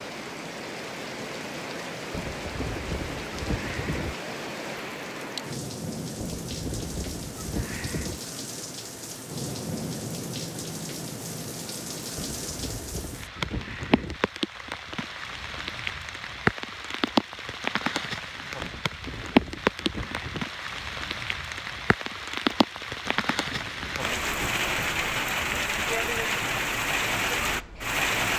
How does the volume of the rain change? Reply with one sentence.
The loudness of the rain goes up.